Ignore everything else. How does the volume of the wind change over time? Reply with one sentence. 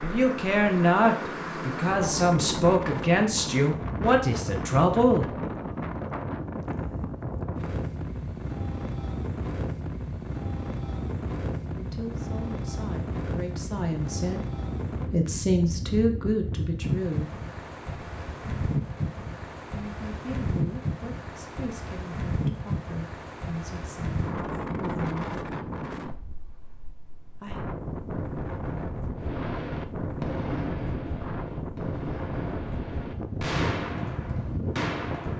The volume of the wind stays about the same.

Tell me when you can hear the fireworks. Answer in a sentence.
The fireworks can be heard from 29.1 to 35.3 s.